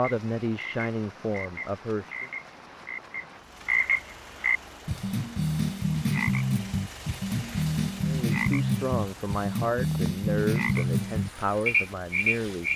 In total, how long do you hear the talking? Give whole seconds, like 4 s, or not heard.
7 s.